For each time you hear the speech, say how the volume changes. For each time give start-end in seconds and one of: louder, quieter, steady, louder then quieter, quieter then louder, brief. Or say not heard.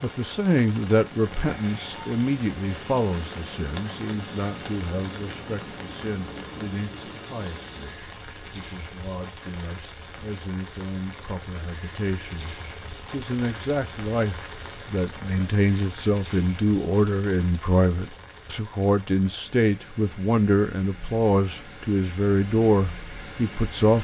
0.0-24.0 quieter then louder.